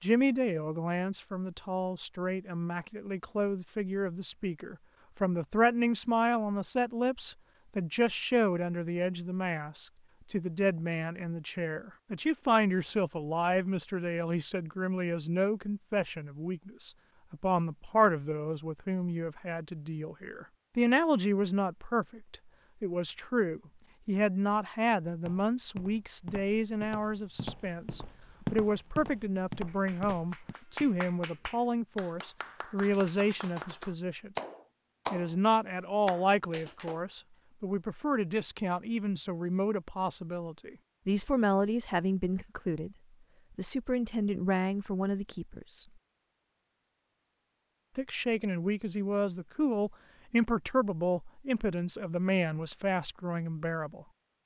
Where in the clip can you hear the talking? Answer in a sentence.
You can hear the talking from 0.0 to 34.3 s, from 35.1 to 43.0 s, from 43.5 to 45.9 s and from 48.0 to 54.0 s.